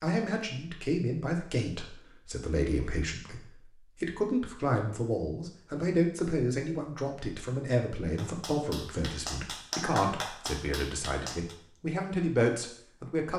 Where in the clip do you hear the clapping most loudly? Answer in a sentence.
The loudest moment of the clapping is at 10 seconds.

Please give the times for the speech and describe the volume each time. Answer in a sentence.
You can hear the speech from 0.0 to 13.3 s, at a steady volume.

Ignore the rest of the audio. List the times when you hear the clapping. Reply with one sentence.
The clapping can be heard from 8.2 to 11.6 s.